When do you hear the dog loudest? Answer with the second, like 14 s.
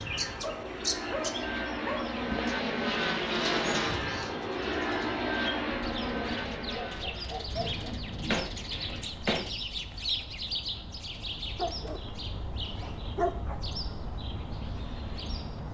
13 s.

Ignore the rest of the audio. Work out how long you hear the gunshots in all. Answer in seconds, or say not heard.
2 s.